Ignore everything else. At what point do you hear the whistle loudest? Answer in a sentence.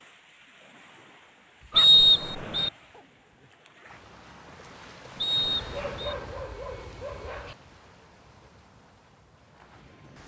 The volume of the whistle peaks at 2 seconds.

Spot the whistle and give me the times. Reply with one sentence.
The whistle can be heard from 1.8 to 2.7 s and from 5.2 to 6.2 s.